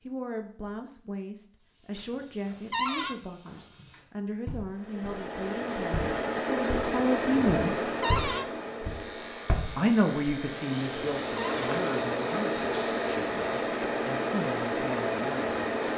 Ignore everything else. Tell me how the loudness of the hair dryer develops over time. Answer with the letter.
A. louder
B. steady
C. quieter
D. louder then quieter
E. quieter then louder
E.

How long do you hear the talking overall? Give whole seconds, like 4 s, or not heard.
14 s.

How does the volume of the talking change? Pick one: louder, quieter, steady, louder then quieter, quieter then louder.
louder then quieter.